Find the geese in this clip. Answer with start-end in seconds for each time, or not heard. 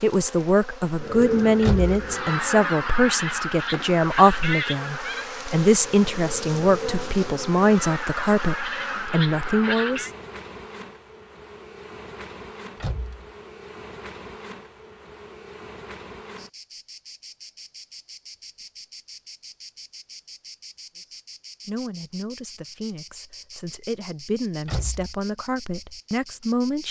0.9-10.1.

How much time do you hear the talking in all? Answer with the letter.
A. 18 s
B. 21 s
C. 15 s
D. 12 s
C.